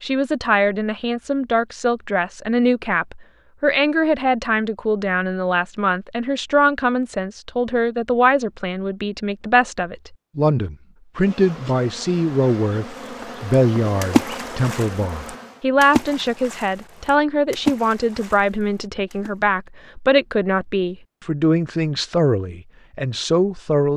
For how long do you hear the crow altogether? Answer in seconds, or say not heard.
not heard.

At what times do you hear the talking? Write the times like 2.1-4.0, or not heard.
0.0-23.9.